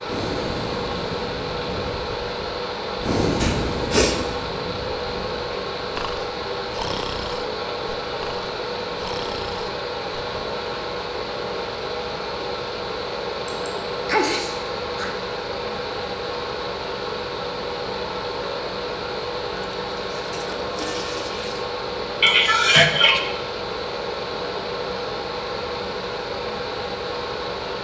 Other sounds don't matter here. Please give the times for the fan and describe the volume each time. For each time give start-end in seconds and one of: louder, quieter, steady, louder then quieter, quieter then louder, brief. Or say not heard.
0.0-27.7 steady.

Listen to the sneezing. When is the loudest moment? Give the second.
23 s.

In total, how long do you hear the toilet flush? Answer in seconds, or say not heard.
2 s.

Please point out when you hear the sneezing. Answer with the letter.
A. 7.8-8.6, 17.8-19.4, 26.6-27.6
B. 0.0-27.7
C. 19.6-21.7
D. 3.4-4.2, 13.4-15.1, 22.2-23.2
D.